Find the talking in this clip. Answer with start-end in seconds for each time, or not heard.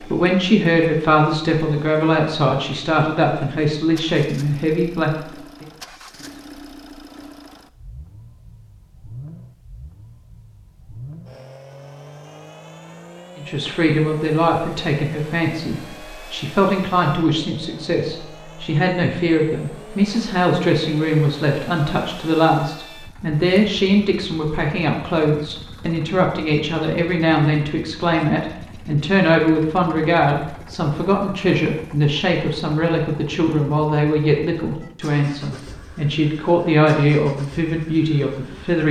0.1-5.7, 13.3-38.8.